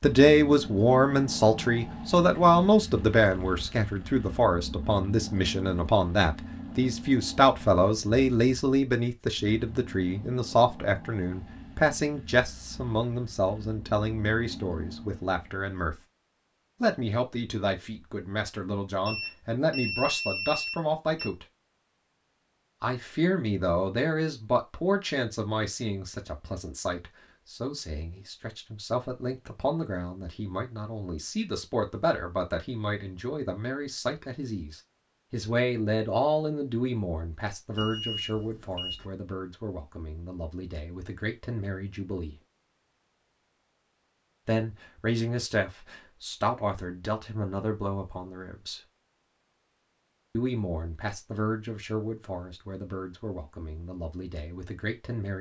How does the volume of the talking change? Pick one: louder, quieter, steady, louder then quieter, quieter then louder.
quieter.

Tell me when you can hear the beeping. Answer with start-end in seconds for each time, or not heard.
19.1-21.3, 37.8-39.1.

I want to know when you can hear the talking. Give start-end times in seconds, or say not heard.
0.0-16.0, 16.8-21.4, 22.8-42.4, 44.5-48.8, 50.4-55.3.